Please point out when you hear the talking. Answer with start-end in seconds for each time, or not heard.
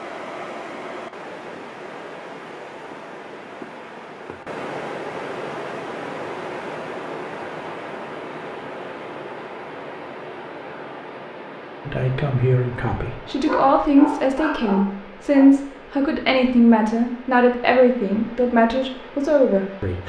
11.8-20.0.